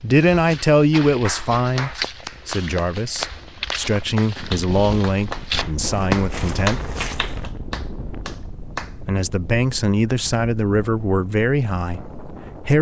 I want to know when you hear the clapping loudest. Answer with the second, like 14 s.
6 s.